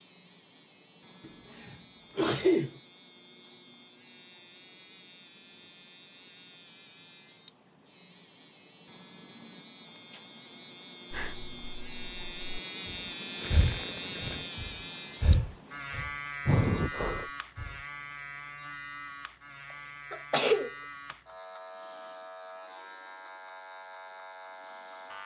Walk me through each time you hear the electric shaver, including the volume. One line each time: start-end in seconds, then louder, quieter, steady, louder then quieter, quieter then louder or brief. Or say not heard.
0.0-25.2 louder then quieter.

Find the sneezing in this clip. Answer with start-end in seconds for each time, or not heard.
1.2-2.7, 20.1-21.1.